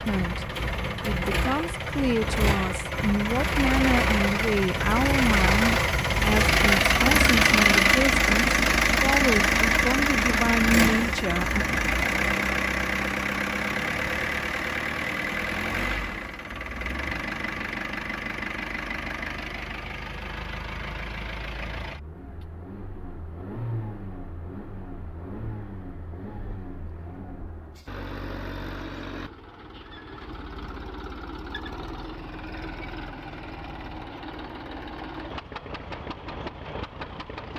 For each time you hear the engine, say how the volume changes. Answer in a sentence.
The engine can be heard from 0.0 to 37.5 s, getting quieter.